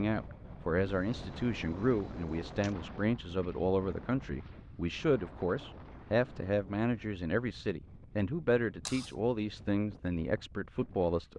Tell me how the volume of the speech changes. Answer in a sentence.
The loudness of the speech stays about the same.